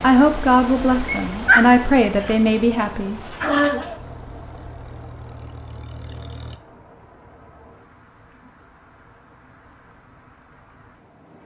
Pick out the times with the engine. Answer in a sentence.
You can hear the engine from 4.0 to 6.6 s.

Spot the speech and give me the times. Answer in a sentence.
You can hear the speech from 0.0 to 3.6 s.